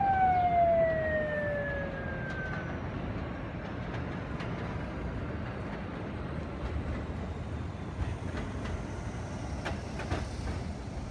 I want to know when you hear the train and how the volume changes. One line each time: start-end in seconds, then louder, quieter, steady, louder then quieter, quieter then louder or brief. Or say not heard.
0.0-11.0 steady.